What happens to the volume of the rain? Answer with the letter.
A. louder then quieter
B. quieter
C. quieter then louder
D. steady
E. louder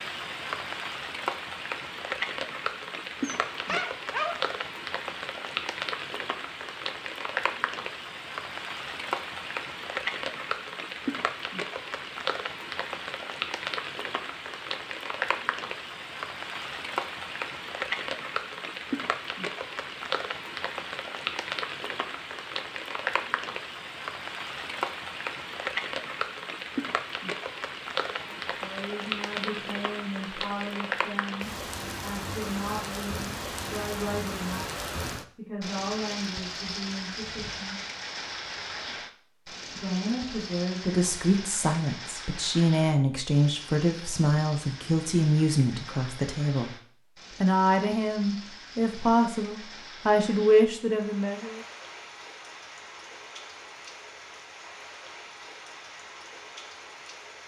B.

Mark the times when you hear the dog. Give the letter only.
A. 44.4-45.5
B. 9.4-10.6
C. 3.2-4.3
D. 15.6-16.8
C.